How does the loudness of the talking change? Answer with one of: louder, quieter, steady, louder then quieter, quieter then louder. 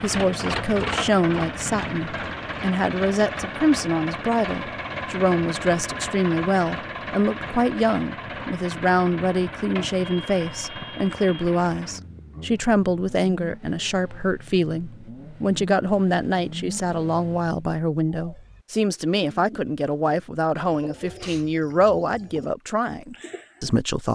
steady.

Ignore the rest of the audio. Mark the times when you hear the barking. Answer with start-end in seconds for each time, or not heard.
not heard.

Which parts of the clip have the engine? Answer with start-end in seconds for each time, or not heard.
0.0-17.6.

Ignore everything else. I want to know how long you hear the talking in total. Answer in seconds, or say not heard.
24 s.